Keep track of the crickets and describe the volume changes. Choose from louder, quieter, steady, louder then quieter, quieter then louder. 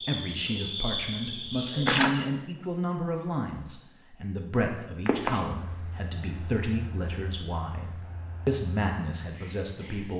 quieter.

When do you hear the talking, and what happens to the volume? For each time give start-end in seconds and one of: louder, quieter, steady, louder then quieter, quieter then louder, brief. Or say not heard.
0.0-10.1 steady.